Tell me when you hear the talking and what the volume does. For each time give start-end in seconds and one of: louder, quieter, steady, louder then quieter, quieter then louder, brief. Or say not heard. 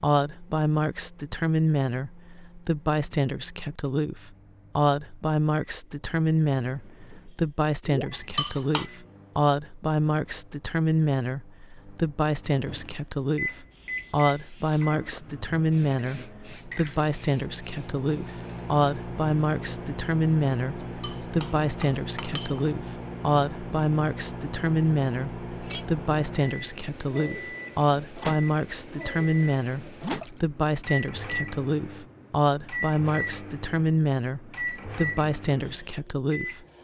0.0-36.6 steady.